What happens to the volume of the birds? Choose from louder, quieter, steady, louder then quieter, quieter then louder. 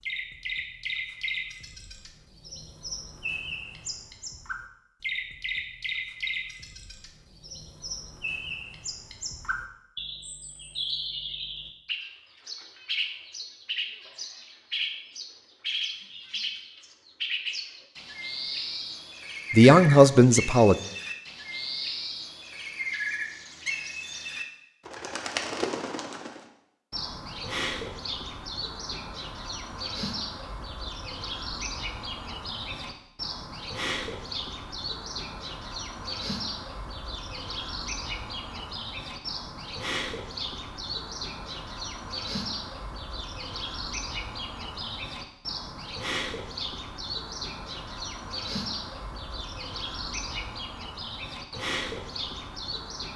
steady.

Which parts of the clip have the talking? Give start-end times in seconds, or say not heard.
19.5-20.8.